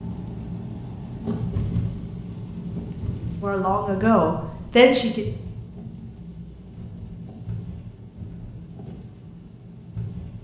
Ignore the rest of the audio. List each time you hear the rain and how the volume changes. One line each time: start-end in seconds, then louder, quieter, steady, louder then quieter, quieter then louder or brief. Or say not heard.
0.0-10.3 quieter.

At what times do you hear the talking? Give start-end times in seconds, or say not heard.
3.4-5.2.